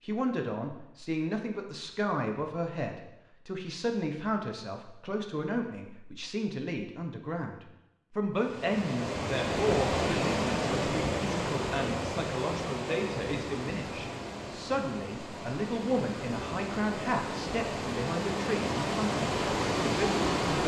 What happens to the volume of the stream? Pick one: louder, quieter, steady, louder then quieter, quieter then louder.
quieter then louder.